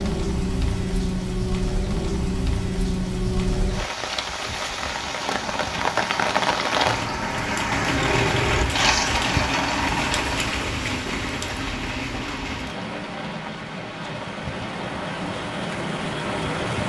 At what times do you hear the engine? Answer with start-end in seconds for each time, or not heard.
4.7-10.4.